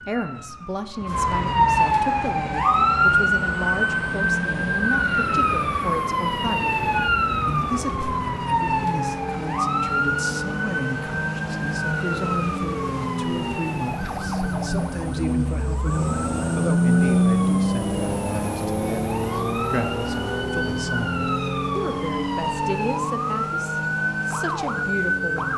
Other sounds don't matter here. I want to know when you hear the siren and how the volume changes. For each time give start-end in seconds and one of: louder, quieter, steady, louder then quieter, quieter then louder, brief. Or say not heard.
0.0-25.5 quieter then louder.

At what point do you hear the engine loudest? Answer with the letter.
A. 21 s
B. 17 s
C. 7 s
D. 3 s
B.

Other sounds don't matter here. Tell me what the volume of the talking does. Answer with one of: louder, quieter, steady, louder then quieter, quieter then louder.
steady.